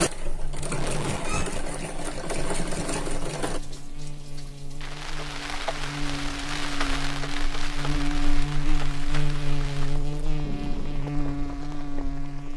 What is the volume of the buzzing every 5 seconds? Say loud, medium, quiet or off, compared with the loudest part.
medium, loud, loud.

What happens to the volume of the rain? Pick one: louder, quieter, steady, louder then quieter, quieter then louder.
louder then quieter.